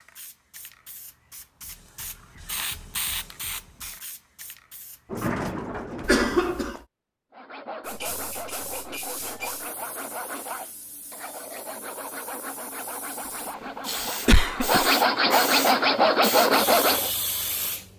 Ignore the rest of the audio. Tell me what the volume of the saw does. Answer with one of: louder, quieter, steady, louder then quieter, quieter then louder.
louder.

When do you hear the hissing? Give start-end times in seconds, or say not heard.
0.0-5.4, 7.8-17.9.